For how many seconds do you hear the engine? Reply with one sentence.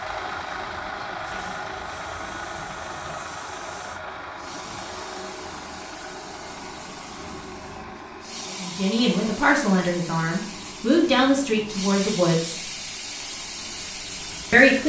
You can hear the engine for 15 seconds altogether.